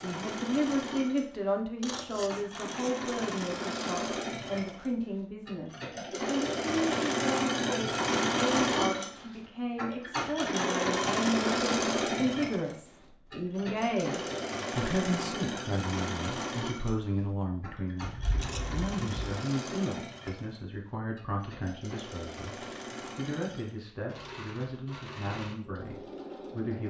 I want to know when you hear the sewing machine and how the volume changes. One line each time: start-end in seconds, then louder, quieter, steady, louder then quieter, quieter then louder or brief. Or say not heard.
0.0-26.8 louder then quieter.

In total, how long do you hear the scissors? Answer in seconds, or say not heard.
3 s.